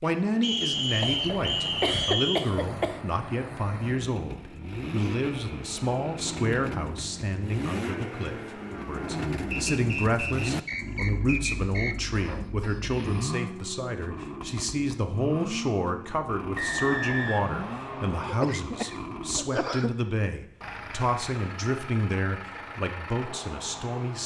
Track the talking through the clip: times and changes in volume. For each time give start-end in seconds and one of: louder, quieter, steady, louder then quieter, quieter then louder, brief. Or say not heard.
0.0-24.2 steady.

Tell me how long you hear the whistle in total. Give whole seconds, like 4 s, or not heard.
6 s.